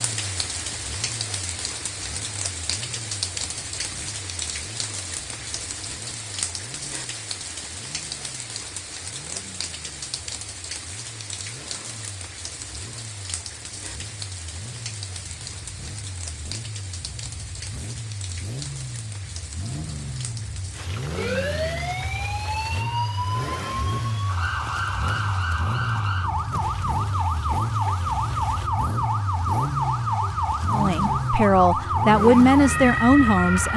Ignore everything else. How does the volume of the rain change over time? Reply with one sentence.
The volume of the rain goes down.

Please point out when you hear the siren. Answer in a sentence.
You can hear the siren from 21.1 to 33.7 s.